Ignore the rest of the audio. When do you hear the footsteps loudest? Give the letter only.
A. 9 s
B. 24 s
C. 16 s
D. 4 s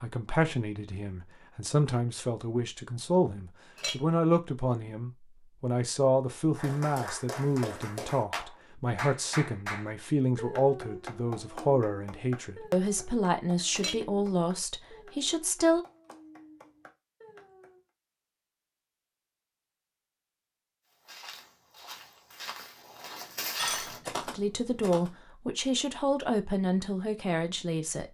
B.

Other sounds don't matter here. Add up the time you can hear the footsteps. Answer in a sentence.
The footsteps can be heard for 4 seconds in total.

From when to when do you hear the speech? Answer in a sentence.
You can hear the speech from 0.0 to 15.8 s and from 24.3 to 28.0 s.